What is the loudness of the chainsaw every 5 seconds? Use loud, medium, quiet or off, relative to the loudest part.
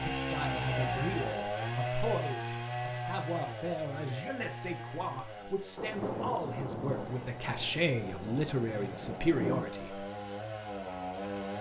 loud, medium, loud.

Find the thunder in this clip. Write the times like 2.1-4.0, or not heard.
5.8-9.7.